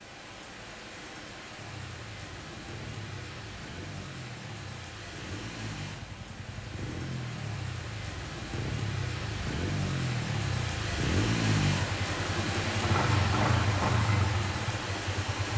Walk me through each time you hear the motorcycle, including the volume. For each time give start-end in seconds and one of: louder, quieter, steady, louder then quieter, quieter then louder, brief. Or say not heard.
1.6-15.5 louder.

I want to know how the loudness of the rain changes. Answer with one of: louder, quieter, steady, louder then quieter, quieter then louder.
louder.